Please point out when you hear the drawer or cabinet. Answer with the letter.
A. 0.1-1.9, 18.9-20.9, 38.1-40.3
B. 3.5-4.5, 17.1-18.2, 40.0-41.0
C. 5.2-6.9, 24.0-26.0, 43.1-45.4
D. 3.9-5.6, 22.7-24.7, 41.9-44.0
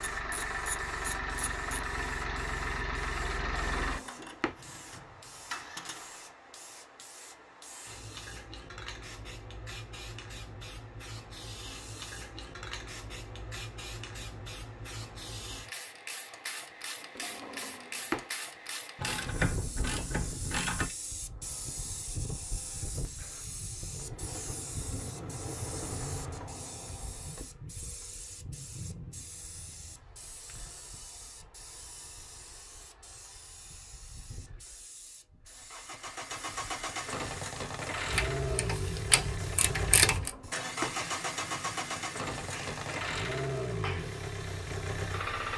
B.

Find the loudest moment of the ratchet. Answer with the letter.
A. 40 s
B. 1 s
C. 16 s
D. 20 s
A.